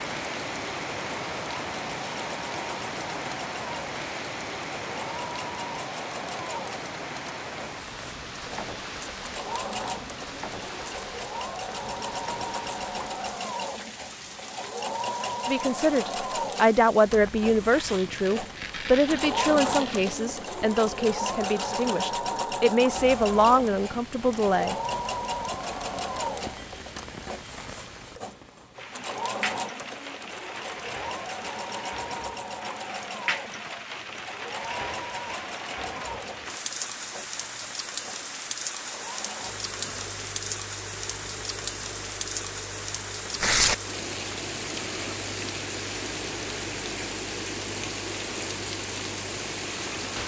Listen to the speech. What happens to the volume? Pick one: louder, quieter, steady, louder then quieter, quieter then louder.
quieter then louder.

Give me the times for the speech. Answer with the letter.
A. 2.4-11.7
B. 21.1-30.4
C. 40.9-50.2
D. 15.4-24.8
D.